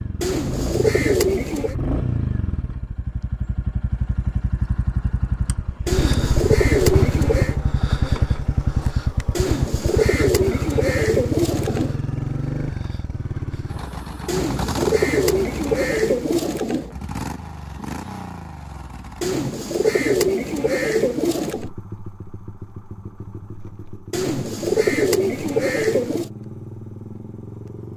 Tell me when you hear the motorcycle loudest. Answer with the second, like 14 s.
7 s.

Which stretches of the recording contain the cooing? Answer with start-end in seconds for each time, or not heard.
0.2-1.8, 5.8-7.6, 9.3-12.0, 14.2-16.9, 19.2-21.7, 24.1-26.3.